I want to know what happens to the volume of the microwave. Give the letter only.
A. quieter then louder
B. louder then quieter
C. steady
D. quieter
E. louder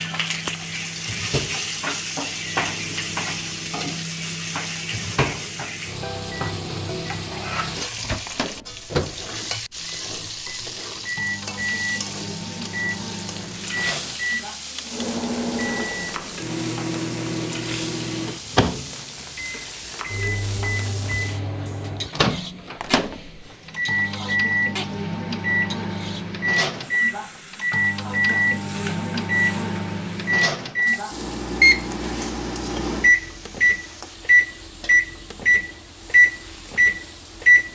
E.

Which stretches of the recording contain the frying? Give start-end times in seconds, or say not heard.
0.0-37.7.